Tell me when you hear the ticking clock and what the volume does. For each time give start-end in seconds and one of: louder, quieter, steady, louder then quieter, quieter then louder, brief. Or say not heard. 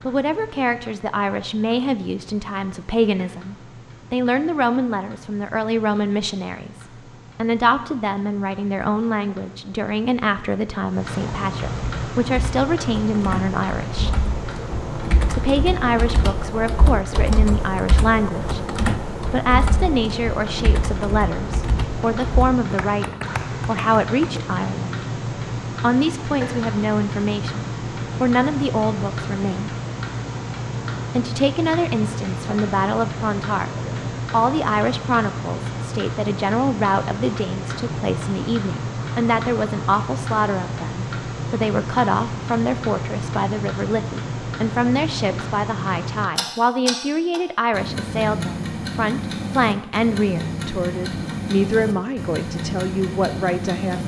0.0-54.0 louder.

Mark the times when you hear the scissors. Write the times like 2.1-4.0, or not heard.
not heard.